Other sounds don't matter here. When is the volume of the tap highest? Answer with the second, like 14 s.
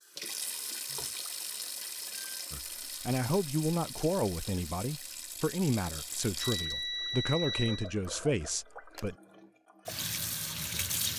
11 s.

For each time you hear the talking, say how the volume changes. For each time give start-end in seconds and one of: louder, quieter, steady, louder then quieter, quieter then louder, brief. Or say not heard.
2.5-9.2 steady.